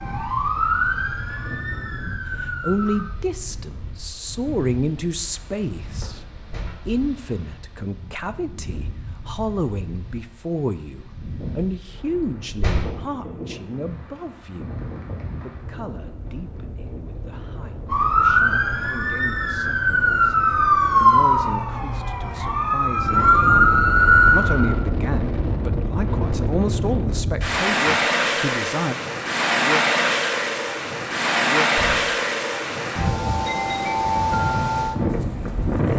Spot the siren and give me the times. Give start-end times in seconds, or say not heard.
0.0-3.0, 17.9-24.8.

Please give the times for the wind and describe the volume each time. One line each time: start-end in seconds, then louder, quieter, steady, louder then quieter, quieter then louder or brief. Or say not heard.
0.0-35.9 louder.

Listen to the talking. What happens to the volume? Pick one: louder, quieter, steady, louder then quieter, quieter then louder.
quieter then louder.